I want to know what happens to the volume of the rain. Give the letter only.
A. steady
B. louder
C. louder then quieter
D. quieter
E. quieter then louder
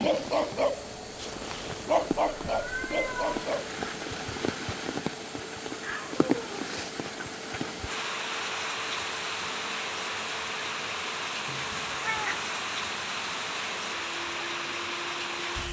B.